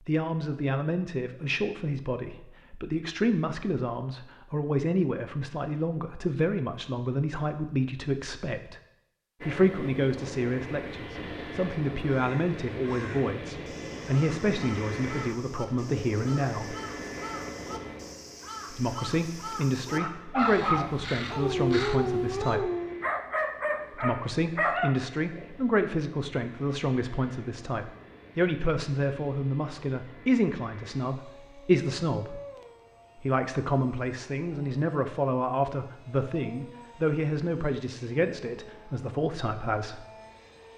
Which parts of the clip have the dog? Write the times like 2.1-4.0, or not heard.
19.9-25.5.